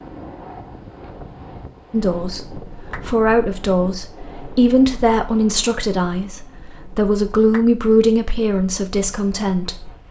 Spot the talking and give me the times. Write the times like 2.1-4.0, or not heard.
1.9-9.9.